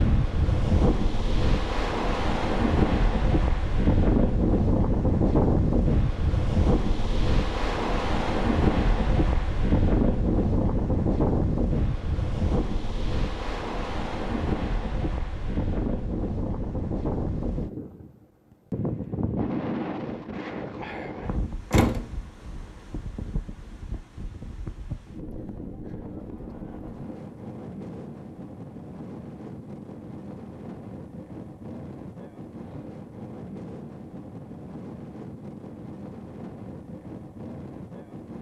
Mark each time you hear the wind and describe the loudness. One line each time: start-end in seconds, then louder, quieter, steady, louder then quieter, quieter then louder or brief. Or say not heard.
0.0-38.3 quieter.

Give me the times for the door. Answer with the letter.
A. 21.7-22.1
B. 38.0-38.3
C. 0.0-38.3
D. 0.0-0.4
A.